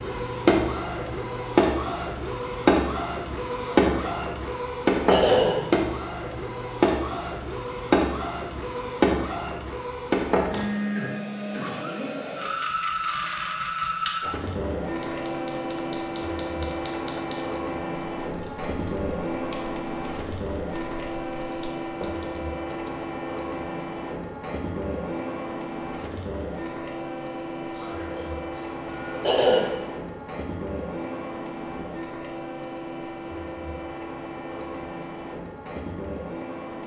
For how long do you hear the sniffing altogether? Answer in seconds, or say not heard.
4 s.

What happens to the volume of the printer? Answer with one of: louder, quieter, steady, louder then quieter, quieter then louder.
quieter.